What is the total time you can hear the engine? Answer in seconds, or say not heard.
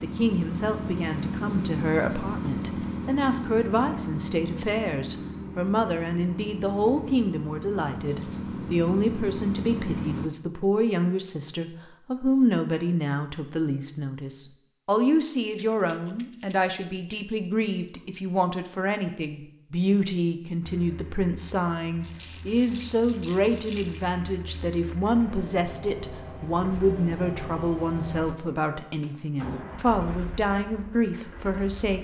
22 s.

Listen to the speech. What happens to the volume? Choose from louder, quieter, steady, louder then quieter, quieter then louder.
steady.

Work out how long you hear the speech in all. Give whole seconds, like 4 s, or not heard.
32 s.